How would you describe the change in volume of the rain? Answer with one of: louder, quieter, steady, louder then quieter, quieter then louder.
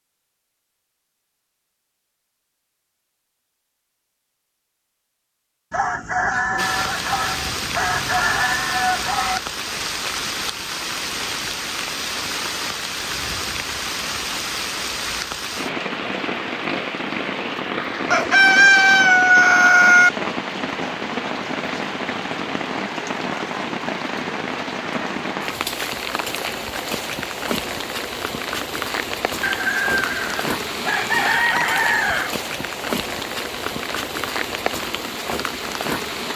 steady.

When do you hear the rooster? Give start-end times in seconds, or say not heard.
5.7-9.4, 18.1-20.1, 29.4-32.4.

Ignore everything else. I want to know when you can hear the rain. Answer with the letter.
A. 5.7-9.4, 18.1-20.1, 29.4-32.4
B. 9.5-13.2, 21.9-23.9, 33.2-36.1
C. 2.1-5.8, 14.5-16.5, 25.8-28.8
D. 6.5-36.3
D.